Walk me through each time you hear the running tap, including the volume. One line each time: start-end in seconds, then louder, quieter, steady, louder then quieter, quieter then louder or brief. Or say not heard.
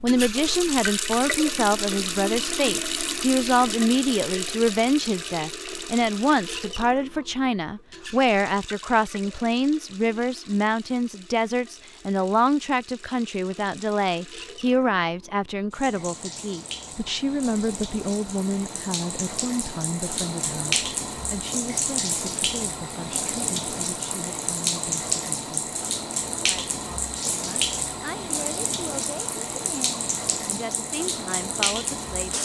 0.0-32.3 quieter then louder.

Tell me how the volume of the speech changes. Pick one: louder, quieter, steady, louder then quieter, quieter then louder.
quieter.